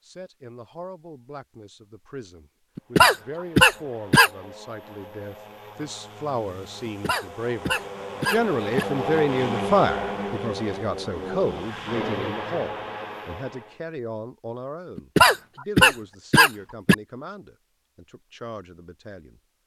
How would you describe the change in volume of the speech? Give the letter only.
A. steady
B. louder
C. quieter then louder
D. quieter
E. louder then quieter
E.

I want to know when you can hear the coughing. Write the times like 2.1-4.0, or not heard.
2.8-4.3, 6.8-8.8, 14.9-16.9.